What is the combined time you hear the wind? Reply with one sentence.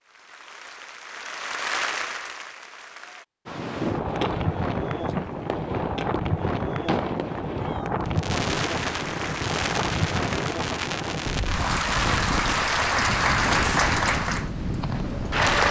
The wind can be heard for 12 seconds in total.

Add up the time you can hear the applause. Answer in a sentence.
You can hear the applause for 10 seconds altogether.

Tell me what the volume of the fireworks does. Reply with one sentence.
The volume of the fireworks stays about the same.